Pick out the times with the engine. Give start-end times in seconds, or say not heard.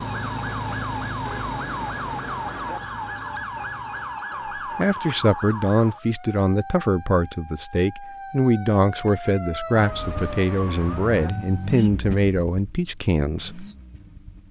0.0-4.3, 9.9-14.4.